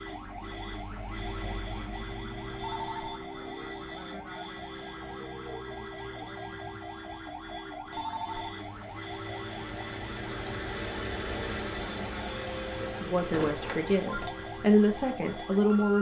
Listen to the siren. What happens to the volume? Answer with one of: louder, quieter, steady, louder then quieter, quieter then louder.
steady.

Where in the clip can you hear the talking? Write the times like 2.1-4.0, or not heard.
12.8-15.9.